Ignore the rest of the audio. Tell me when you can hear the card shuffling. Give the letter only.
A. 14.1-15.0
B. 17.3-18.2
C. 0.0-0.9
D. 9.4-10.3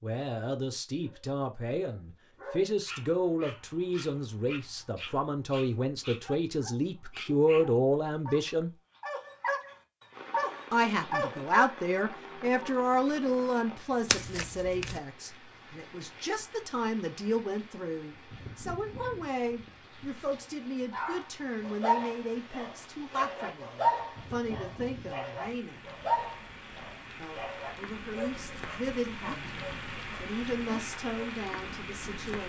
A.